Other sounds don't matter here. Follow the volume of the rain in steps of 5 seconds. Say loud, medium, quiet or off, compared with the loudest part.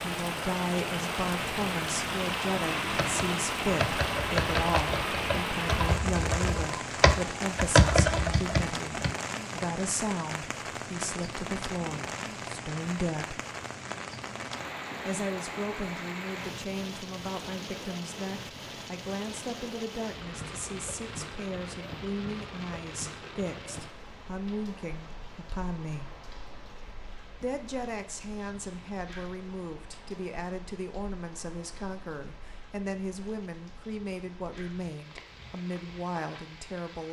loud, loud, medium, medium, medium, quiet, quiet, quiet.